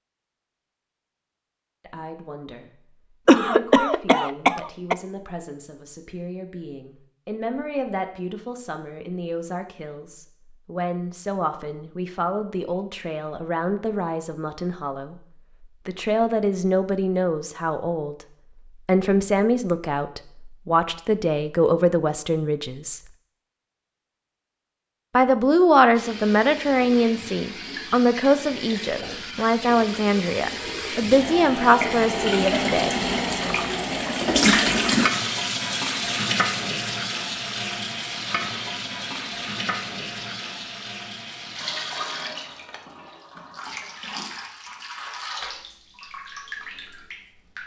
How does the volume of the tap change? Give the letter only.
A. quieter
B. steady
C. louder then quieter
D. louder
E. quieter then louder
C.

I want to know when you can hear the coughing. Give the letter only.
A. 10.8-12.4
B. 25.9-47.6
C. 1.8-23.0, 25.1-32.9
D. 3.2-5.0
D.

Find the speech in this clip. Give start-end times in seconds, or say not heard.
1.8-23.0, 25.1-32.9.